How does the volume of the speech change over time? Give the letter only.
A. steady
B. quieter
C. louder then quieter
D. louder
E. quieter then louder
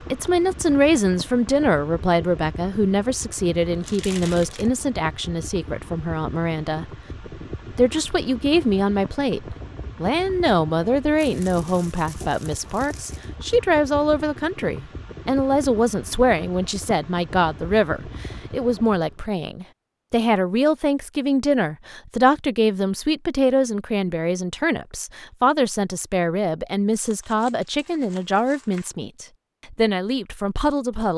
A.